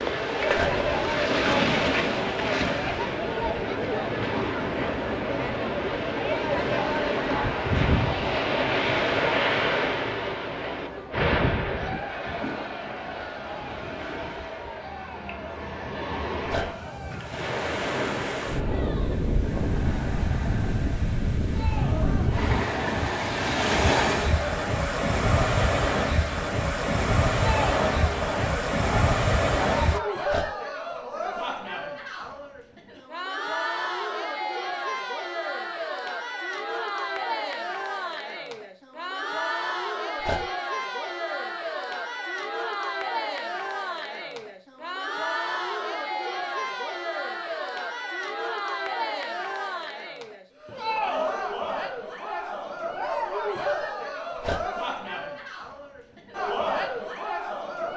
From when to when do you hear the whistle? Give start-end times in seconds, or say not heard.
not heard.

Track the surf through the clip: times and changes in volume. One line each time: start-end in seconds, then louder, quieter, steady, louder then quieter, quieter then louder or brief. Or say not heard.
0.0-30.0 quieter then louder.